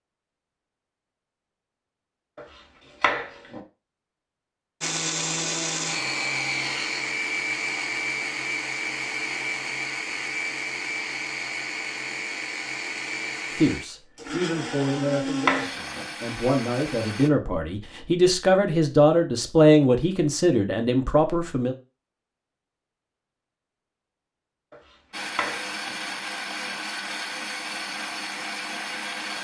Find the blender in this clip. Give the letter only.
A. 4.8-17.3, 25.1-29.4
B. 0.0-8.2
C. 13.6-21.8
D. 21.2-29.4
A.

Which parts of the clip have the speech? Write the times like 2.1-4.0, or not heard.
13.6-21.8.